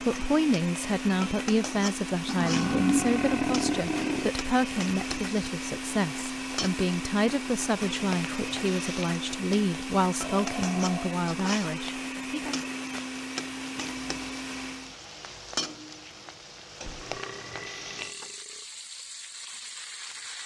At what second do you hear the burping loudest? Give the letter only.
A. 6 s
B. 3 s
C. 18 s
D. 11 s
B.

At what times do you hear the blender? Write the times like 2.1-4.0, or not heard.
0.0-14.9.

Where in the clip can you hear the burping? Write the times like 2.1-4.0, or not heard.
2.2-4.3, 10.2-11.2, 16.9-18.6.